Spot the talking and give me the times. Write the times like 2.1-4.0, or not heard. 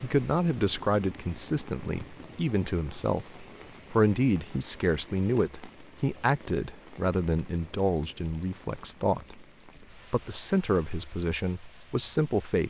0.0-12.6.